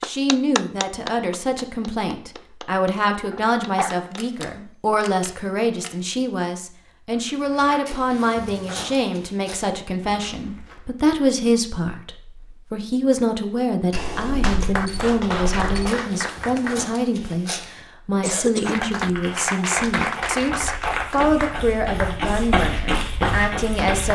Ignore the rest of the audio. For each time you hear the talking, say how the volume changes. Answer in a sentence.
You can hear the talking from 0.0 to 24.1 s, at a steady volume.